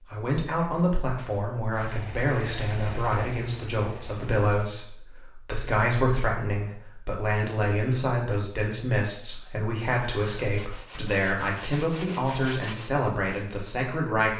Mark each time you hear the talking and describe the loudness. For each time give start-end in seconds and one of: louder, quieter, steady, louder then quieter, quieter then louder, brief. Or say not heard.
0.1-14.3 steady.